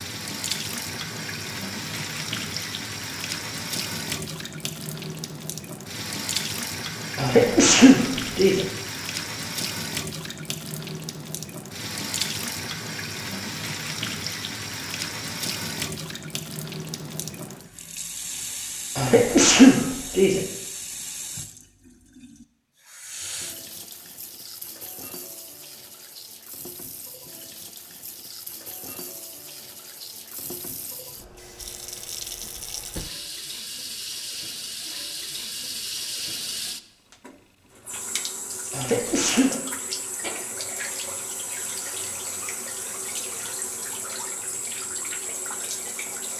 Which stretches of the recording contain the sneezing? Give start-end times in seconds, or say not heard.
7.2-8.7, 18.9-20.4, 38.7-39.5.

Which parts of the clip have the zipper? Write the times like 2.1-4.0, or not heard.
not heard.